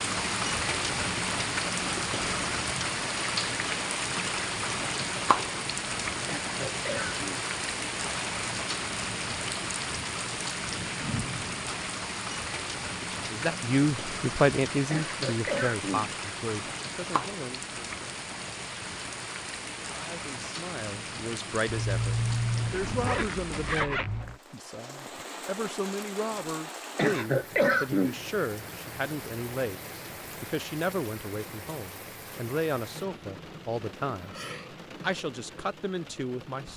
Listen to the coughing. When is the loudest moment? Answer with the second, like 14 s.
28 s.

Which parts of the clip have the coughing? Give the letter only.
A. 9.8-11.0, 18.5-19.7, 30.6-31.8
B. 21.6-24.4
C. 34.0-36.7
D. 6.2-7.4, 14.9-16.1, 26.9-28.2
D.